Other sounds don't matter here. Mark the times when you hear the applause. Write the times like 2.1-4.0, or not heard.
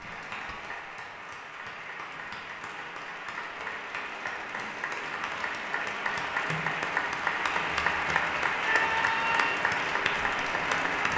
0.0-11.1.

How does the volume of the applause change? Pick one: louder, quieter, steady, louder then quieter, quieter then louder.
louder.